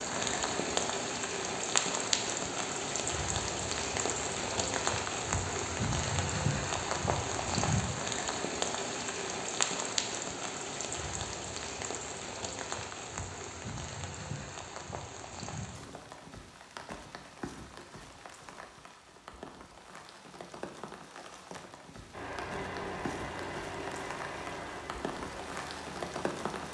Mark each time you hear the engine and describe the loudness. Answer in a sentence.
The engine can be heard from 22.1 to 26.6 s, getting quieter.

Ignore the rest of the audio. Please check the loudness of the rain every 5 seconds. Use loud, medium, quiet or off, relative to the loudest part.
loud, loud, medium, quiet, quiet, medium.